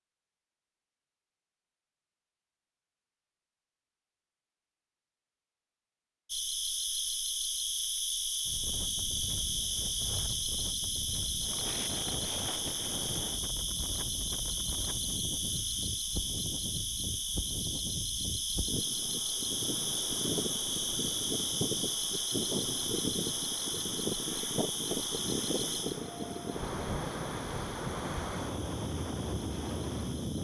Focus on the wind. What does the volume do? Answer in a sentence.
The volume of the wind goes up.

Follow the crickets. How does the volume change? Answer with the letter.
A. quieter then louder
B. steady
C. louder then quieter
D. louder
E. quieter
E.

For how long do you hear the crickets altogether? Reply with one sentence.
The crickets can be heard for 24 seconds in total.